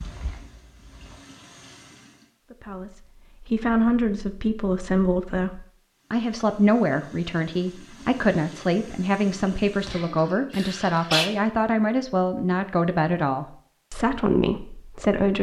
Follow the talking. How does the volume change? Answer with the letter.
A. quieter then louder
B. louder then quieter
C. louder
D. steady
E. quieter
D.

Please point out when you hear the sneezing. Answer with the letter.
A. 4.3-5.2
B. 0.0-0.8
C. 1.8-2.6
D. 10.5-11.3
D.